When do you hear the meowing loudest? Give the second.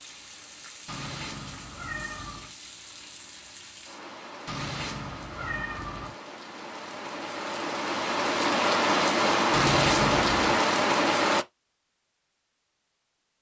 10 s.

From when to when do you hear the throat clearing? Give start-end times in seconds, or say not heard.
not heard.